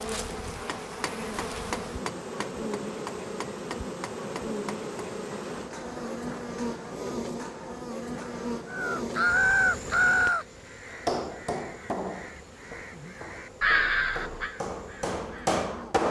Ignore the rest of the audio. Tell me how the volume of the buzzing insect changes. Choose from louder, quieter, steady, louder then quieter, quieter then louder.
quieter.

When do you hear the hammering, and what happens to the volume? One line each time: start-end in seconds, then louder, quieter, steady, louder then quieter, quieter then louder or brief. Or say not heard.
0.7-8.4 quieter
11.0-16.0 quieter then louder.